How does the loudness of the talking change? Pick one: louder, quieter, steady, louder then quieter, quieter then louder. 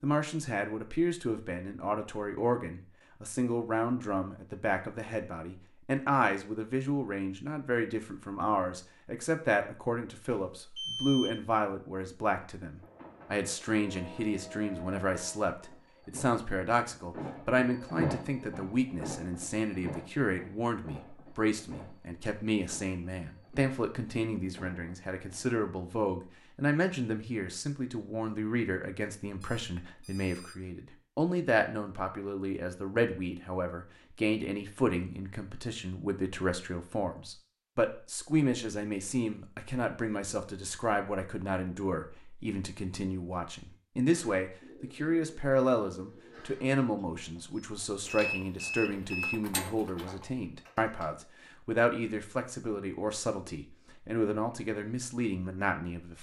steady.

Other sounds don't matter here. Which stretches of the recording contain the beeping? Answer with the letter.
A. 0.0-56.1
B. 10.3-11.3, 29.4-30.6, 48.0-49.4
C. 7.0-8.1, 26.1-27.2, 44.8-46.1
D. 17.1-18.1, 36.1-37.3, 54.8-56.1
B.